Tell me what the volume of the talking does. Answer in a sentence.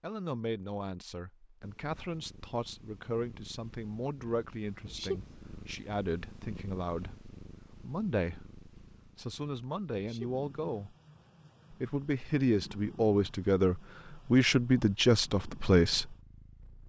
The loudness of the talking goes up.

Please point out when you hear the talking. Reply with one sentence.
The talking can be heard from 0.0 to 10.9 s and from 11.7 to 16.1 s.